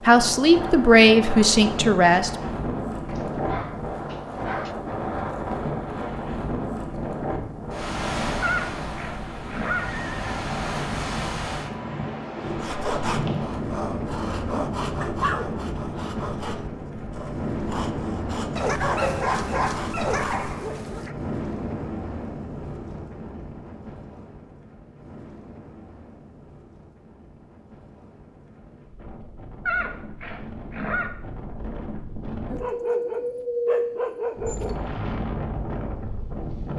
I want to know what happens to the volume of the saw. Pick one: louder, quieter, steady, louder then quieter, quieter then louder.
quieter.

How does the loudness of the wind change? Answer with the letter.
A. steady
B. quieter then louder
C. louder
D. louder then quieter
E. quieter
B.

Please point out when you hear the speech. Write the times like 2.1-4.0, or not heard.
0.1-2.3.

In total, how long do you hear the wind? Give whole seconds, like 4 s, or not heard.
37 s.